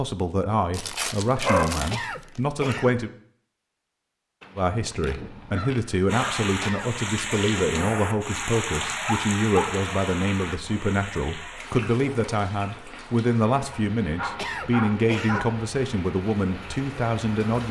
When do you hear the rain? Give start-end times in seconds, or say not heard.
6.0-17.6.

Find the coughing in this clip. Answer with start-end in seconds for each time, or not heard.
1.9-3.0, 6.6-7.7, 14.3-15.4.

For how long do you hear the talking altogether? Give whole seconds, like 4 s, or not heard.
16 s.